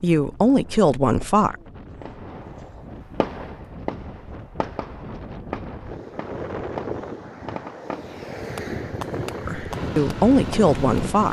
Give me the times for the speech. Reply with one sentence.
You can hear the speech from 0.0 to 1.6 s and from 9.4 to 11.2 s.